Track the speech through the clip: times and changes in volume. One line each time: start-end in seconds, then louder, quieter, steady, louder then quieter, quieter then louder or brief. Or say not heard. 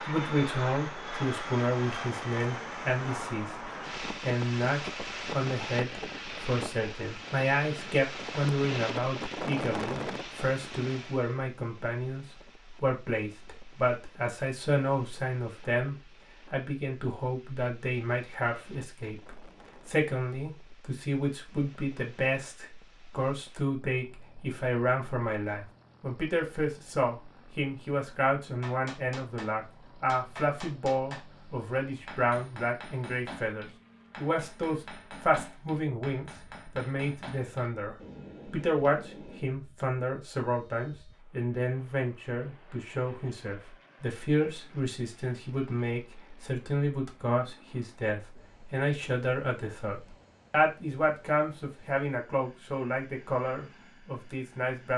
0.1-54.9 steady.